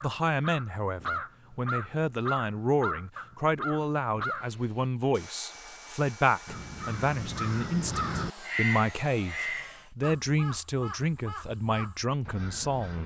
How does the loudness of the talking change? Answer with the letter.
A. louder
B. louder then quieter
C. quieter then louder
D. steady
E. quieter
D.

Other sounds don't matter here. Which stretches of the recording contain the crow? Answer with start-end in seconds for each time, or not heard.
0.0-4.6, 6.5-13.0.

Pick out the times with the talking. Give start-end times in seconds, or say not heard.
0.0-13.0.